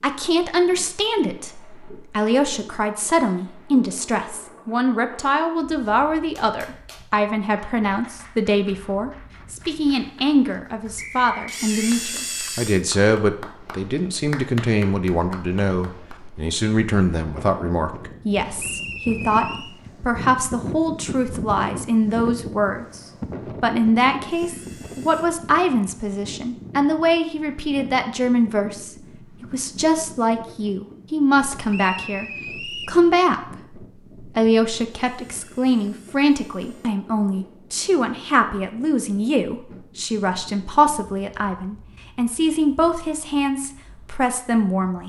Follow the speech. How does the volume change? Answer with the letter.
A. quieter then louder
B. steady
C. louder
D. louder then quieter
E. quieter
B.